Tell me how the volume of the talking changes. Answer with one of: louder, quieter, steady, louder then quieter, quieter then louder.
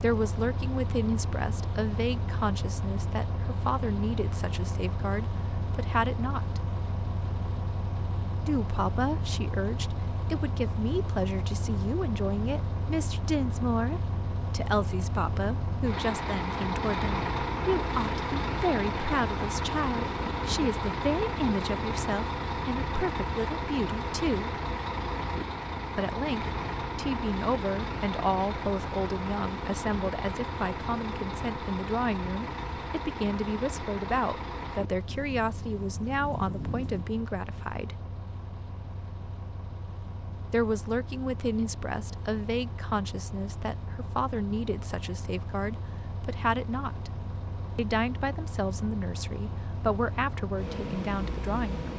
steady.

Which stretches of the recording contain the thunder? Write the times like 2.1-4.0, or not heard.
35.0-37.0.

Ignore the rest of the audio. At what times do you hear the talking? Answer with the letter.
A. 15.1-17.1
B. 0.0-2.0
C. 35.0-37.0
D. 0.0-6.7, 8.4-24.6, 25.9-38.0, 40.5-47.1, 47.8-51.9
D.